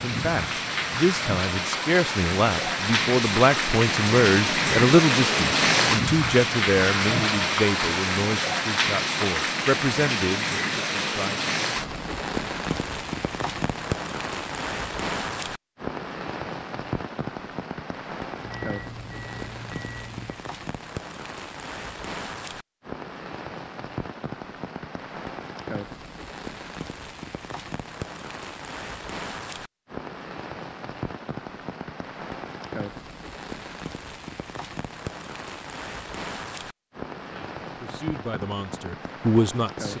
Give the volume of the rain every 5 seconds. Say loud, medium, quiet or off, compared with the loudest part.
loud, loud, medium, medium, quiet, quiet, quiet, quiet.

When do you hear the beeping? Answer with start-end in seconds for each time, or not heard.
18.4-20.4.